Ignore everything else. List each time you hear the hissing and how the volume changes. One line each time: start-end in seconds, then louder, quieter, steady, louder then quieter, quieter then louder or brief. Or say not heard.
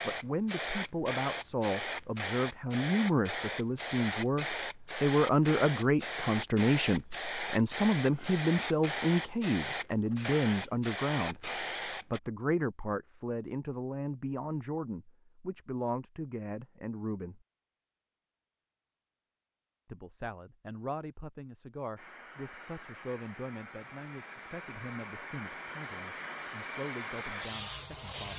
0.0-12.2 steady
21.9-28.3 louder.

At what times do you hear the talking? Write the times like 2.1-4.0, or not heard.
0.0-17.4, 19.9-28.3.